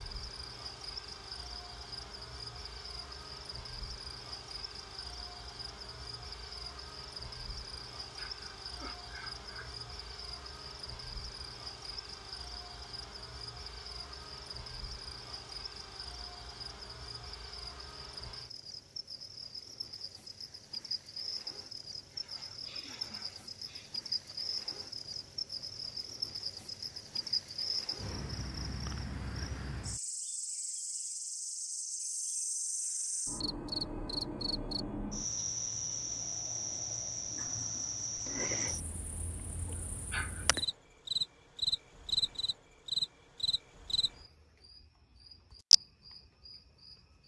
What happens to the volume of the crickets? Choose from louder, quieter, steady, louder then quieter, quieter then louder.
louder.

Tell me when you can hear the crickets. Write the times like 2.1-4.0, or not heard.
0.0-47.2.